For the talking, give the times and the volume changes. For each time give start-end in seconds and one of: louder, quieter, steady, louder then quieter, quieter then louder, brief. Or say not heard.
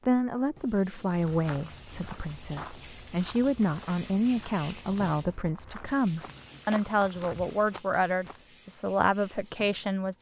0.1-10.1 steady.